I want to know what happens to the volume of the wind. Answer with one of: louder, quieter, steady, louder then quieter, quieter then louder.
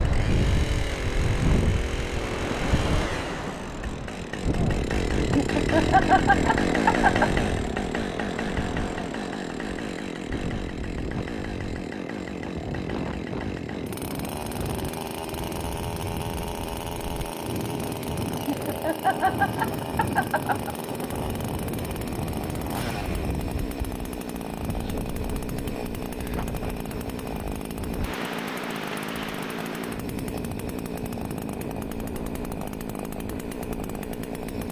quieter.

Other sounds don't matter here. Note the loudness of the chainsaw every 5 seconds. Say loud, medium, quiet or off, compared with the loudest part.
medium, loud, medium, medium, medium, medium, medium.